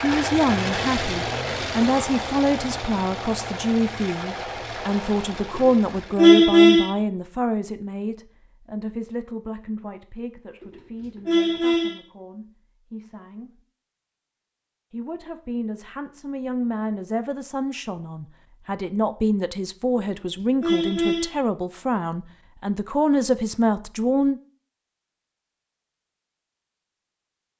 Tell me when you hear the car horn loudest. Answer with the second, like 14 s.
6 s.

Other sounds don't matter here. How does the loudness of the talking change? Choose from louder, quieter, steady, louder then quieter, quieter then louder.
quieter then louder.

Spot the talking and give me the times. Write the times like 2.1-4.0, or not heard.
0.0-13.5, 14.9-24.4.